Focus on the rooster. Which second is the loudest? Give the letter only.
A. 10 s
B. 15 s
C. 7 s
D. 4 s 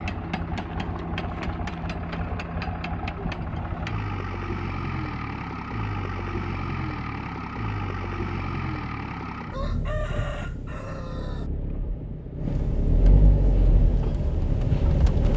A.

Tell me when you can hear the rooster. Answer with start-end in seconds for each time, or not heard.
9.5-11.5.